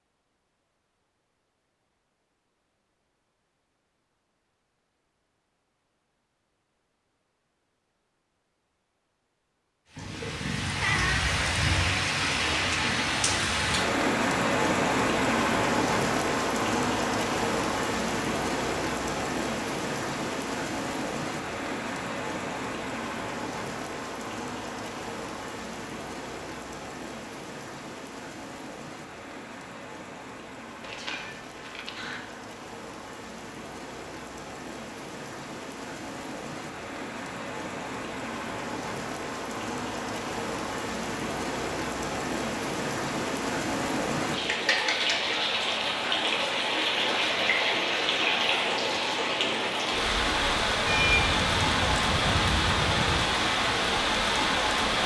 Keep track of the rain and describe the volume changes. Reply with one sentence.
The loudness of the rain goes down, then up.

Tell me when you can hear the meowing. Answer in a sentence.
The meowing can be heard from 9.9 to 11.3 s, from 30.8 to 32.2 s and from 50.9 to 53.3 s.